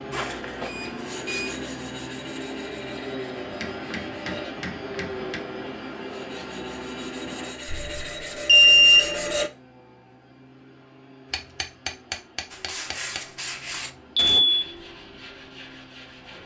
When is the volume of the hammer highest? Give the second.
12 s.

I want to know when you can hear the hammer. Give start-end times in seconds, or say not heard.
3.4-5.4, 11.3-13.2.